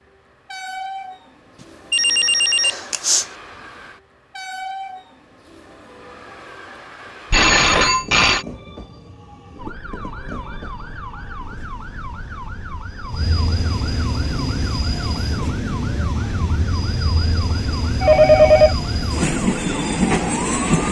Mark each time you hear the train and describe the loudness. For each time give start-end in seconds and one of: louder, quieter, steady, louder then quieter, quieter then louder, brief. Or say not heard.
0.0-20.8 louder.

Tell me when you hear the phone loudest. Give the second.
18 s.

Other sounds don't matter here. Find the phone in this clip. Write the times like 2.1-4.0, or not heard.
1.9-3.2, 7.3-8.4, 18.0-18.8.